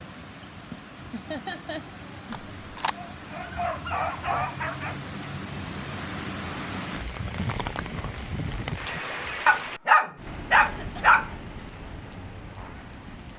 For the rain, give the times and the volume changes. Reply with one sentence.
You can hear the rain from 0.0 to 13.3 s, getting louder then quieter.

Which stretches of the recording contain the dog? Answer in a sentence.
The dog can be heard from 2.3 to 5.0 s and from 9.4 to 11.3 s.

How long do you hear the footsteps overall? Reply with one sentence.
You can't hear the footsteps here.